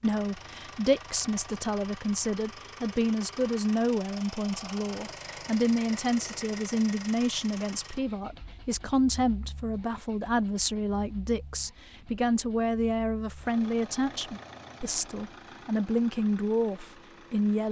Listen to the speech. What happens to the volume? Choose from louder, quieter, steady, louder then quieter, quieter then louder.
steady.